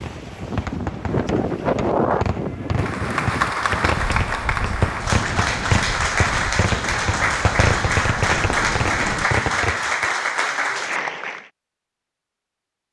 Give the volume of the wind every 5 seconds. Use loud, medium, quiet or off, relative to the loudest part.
loud, medium, off.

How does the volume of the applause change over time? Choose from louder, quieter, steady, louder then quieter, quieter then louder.
steady.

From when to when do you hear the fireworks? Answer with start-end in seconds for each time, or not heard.
0.0-10.1.